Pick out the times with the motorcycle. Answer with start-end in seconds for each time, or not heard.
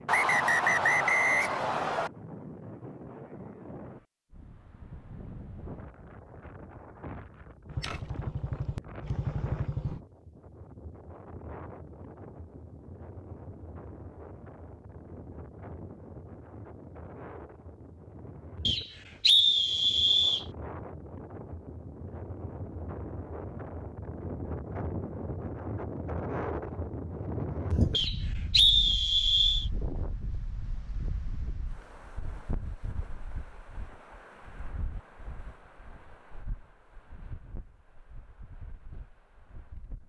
7.7-10.0.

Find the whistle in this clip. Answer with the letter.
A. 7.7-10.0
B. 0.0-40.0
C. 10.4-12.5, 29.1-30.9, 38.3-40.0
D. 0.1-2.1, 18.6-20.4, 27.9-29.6
D.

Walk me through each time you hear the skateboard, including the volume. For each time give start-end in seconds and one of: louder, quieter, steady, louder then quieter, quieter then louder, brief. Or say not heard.
not heard.